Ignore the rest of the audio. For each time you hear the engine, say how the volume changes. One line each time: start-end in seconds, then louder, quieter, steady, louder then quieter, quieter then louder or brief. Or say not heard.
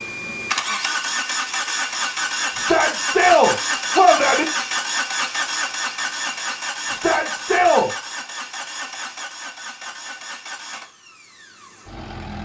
0.0-12.4 quieter.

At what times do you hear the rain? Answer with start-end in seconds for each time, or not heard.
not heard.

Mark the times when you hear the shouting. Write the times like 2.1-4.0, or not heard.
2.5-4.5, 6.9-7.9.